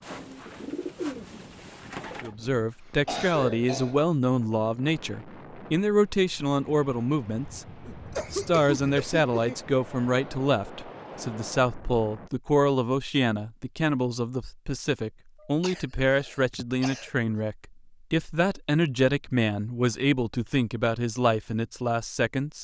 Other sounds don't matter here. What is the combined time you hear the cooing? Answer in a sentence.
The cooing can be heard for 2 seconds in total.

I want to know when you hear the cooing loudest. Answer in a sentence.
The volume of the cooing peaks at 1 second.